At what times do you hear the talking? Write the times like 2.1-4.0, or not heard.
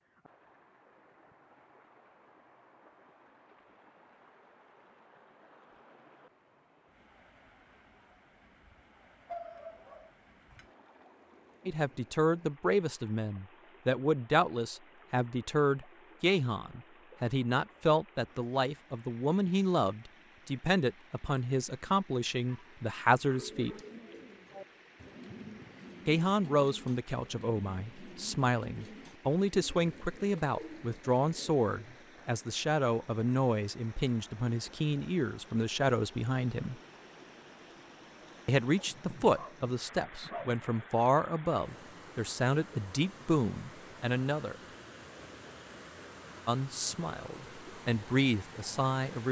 11.7-23.8, 26.1-36.8, 38.5-44.5, 46.5-49.2.